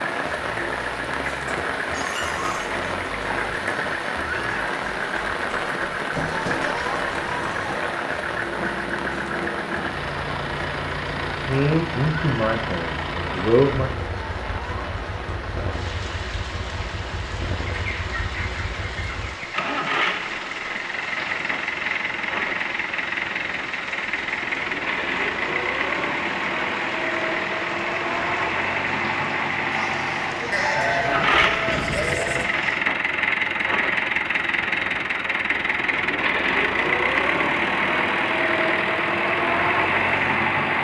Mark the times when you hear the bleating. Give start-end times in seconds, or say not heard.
6.1-7.8, 30.5-32.5.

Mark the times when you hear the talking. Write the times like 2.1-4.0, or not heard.
11.4-13.9.